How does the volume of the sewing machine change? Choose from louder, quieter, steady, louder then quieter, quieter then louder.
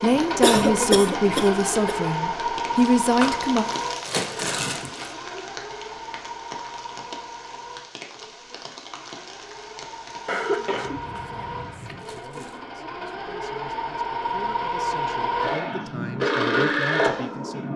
quieter then louder.